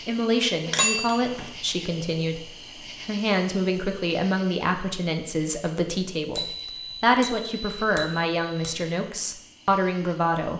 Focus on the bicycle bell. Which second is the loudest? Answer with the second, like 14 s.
1 s.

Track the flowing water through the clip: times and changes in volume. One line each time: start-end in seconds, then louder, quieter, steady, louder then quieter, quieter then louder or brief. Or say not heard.
not heard.